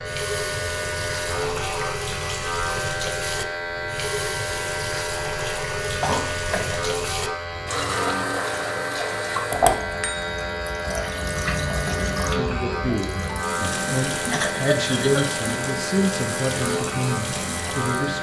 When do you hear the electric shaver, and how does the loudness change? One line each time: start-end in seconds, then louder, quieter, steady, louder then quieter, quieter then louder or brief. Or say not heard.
0.0-18.1 steady.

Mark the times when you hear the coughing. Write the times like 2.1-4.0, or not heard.
5.8-6.8, 14.3-15.3.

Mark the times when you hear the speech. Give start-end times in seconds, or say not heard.
12.2-18.1.